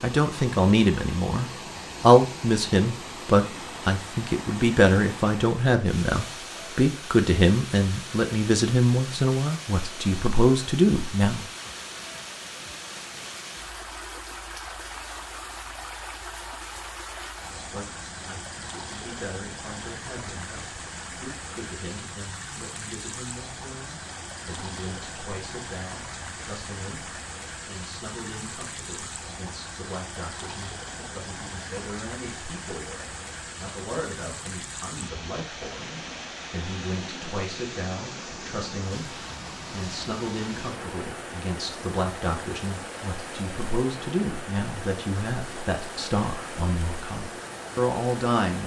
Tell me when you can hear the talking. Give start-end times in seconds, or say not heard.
0.0-11.4, 17.7-48.6.